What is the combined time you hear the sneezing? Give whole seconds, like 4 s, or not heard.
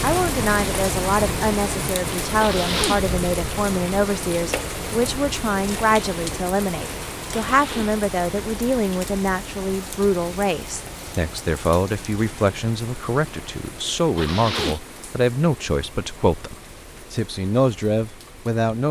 2 s.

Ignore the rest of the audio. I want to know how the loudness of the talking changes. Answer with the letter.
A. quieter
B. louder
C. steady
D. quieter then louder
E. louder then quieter
C.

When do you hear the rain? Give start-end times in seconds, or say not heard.
0.0-18.8.